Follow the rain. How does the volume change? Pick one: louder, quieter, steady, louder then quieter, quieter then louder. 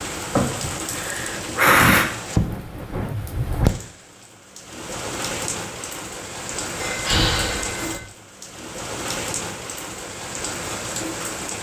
steady.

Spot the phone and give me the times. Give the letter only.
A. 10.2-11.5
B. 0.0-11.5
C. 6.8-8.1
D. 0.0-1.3
C.